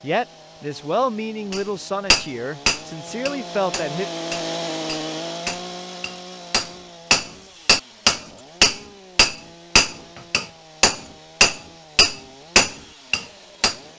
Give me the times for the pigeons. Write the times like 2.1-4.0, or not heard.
not heard.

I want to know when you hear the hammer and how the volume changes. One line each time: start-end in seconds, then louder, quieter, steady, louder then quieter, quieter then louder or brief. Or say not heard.
1.5-13.8 quieter then louder.